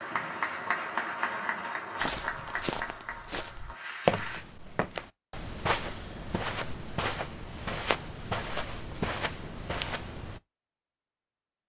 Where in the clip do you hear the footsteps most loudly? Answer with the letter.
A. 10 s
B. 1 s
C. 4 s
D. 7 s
C.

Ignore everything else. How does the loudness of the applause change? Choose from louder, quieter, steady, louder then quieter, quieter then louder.
quieter.